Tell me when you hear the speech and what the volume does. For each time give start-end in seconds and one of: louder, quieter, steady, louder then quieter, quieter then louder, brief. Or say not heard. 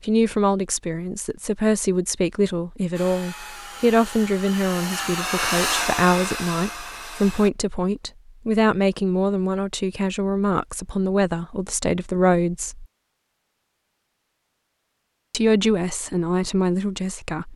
0.0-12.8 steady
15.3-17.5 brief.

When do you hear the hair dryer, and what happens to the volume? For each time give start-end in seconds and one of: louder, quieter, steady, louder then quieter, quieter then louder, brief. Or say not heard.
2.9-7.5 louder then quieter.